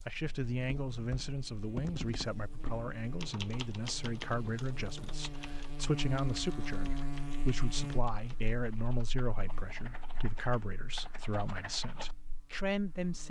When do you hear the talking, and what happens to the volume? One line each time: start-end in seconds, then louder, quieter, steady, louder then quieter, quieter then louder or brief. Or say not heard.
0.1-13.2 steady.